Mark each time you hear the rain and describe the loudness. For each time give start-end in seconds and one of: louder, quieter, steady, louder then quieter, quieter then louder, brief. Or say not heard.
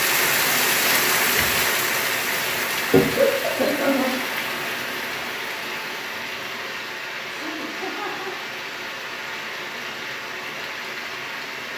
0.0-11.7 quieter.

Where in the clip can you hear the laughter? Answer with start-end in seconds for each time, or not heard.
3.1-4.2, 7.3-8.3.